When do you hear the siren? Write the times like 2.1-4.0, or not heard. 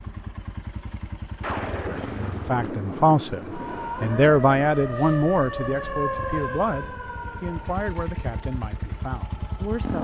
3.5-9.9.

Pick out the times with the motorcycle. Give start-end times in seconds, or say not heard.
0.0-2.7, 6.2-9.9.